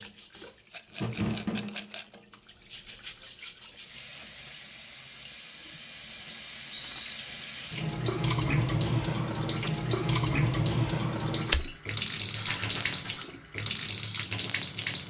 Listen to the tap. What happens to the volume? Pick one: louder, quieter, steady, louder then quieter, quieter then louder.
louder.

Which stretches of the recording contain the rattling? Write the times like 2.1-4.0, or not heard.
0.7-2.0, 6.7-7.2, 12.3-13.2.